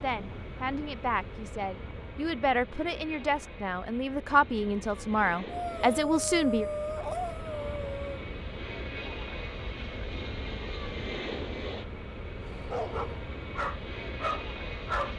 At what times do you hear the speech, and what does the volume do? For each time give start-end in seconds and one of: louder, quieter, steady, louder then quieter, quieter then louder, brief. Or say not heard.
0.0-6.7 louder.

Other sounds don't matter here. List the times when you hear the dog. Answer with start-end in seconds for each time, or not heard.
5.5-8.2, 12.4-15.1.